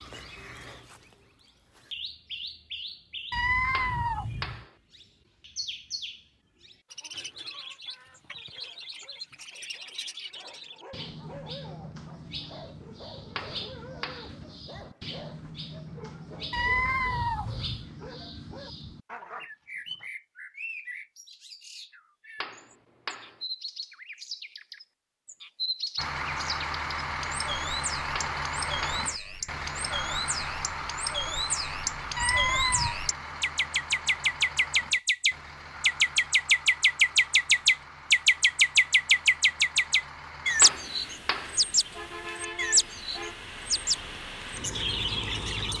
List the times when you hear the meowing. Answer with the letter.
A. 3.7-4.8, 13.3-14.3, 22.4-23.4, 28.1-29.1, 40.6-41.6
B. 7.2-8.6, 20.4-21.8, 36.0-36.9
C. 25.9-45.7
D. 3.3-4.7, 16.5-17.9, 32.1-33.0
D.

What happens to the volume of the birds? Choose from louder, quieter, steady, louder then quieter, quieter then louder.
louder.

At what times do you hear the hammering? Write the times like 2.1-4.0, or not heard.
3.7-4.8, 13.3-14.3, 22.4-23.4, 28.1-29.1, 40.6-41.6.